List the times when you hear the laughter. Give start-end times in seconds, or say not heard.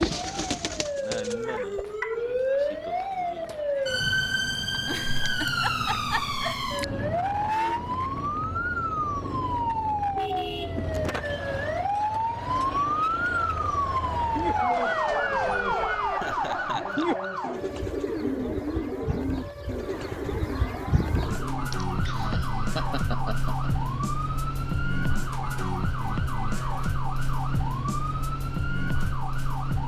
4.8-6.7, 16.1-17.2, 21.7-23.7.